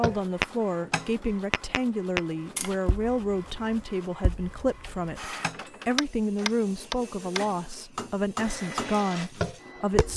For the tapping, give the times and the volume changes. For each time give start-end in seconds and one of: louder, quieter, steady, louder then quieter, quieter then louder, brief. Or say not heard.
0.0-10.1 quieter then louder.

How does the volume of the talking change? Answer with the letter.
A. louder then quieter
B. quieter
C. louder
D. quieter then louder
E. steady
E.